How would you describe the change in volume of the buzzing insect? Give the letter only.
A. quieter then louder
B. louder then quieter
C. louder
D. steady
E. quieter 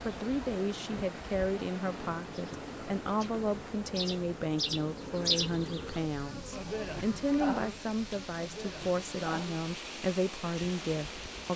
B.